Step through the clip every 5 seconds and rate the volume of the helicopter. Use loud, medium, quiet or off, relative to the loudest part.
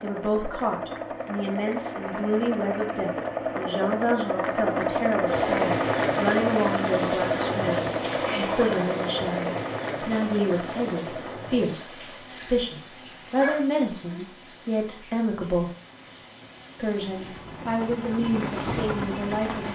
loud, loud, medium, medium.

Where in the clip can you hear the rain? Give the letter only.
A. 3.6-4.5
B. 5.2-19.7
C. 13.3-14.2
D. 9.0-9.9
B.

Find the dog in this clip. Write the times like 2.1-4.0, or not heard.
13.3-14.2.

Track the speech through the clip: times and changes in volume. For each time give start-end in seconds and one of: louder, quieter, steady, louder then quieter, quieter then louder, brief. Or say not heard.
0.0-15.7 steady
16.8-19.7 brief.